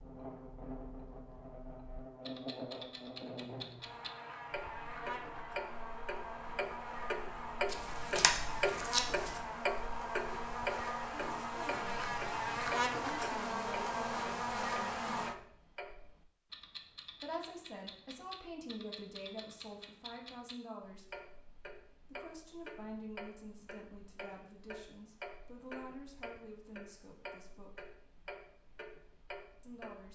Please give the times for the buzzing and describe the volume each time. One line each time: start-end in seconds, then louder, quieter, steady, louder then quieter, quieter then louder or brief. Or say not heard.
0.0-15.3 louder.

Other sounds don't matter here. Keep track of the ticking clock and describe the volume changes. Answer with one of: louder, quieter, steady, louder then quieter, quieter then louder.
louder then quieter.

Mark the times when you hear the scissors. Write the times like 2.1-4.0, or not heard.
7.7-9.4.